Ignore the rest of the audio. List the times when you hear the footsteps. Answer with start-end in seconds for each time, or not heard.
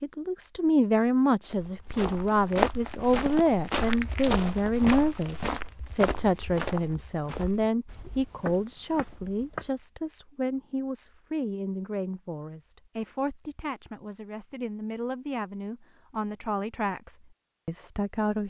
1.4-9.8.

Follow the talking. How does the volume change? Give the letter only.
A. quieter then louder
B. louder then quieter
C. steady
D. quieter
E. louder
D.